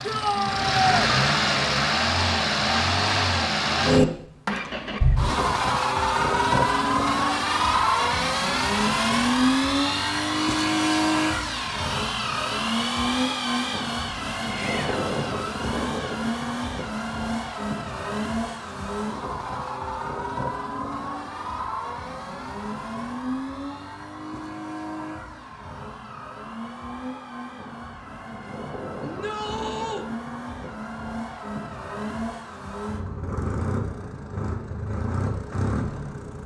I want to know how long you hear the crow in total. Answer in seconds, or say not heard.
not heard.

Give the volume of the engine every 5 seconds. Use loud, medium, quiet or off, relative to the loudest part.
loud, loud, loud, medium, medium, quiet, medium, medium.